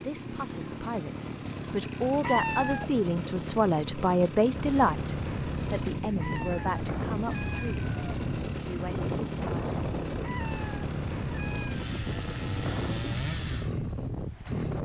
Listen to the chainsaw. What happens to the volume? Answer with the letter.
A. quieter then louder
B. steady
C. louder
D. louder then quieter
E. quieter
B.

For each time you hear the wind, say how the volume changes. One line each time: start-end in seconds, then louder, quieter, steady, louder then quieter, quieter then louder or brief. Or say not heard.
4.5-14.8 steady.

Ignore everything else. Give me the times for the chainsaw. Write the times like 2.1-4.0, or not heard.
0.0-14.8.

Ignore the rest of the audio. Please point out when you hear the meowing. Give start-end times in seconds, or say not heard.
2.2-2.9, 6.2-8.2, 10.2-11.8.